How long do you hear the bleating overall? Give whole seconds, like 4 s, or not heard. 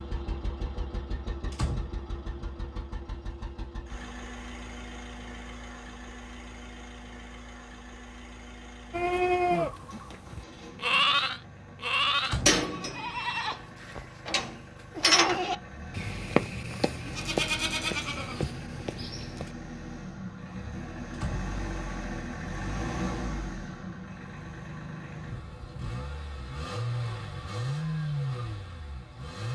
11 s.